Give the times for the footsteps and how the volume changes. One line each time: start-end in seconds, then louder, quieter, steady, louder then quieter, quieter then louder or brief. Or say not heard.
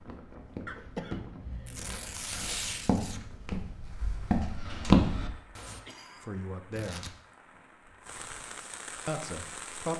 0.0-5.8 quieter then louder.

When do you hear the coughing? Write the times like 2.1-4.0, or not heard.
0.7-2.1, 5.7-6.3.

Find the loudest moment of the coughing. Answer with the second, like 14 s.
1 s.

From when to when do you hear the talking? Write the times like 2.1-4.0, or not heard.
6.2-7.1, 9.1-9.9.